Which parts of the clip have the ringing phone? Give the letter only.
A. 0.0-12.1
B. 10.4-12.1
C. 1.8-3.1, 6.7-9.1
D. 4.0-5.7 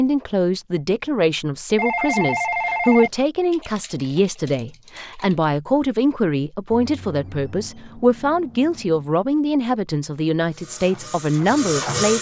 C.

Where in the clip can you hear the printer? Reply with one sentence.
You can hear the printer from 10.4 to 12.1 s.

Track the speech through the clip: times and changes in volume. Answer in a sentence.
The speech can be heard from 0.0 to 12.1 s, at a steady volume.